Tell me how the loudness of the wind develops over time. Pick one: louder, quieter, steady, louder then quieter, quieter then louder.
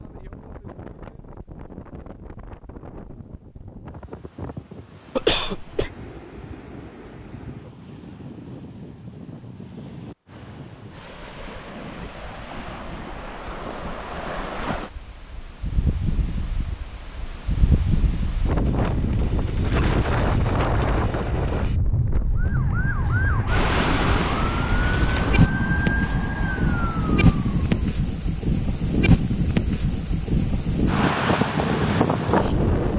louder.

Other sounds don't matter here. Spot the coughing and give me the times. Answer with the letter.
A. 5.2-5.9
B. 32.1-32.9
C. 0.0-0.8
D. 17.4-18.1
A.